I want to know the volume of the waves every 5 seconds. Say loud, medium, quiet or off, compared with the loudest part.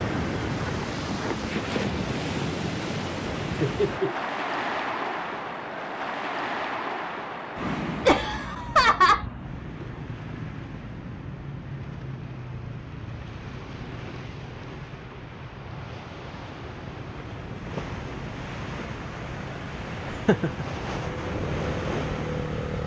loud, loud, medium, medium, loud.